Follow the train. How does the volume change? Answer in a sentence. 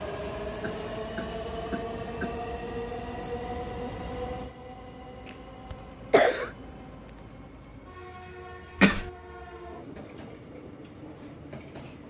The volume of the train goes down.